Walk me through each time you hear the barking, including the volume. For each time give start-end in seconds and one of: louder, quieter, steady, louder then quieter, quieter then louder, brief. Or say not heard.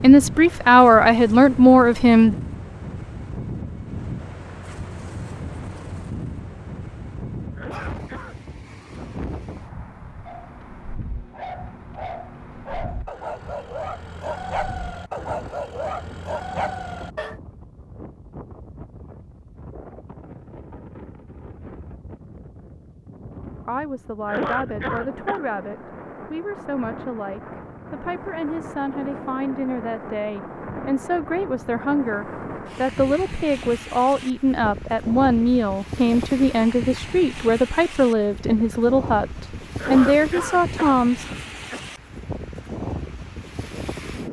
10.2-17.4 louder.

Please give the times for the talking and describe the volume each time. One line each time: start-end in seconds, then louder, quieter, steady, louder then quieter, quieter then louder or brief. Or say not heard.
0.0-2.4 brief
23.6-41.2 louder.